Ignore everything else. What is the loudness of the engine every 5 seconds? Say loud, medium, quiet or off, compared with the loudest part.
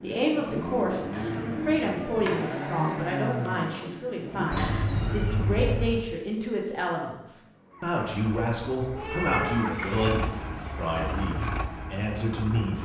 loud, medium, loud.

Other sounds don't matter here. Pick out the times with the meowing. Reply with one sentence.
The meowing can be heard from 1.2 to 2.4 s, from 4.5 to 6.0 s and from 8.9 to 10.4 s.